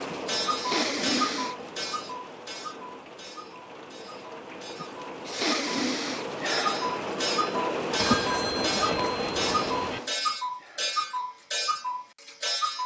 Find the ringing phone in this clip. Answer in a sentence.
The ringing phone can be heard from 8.0 to 10.0 s.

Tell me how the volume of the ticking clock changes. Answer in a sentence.
The volume of the ticking clock goes down, then up.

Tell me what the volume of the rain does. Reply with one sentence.
The volume of the rain goes down, then up.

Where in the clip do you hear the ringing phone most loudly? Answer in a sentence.
The volume of the ringing phone peaks at 8 seconds.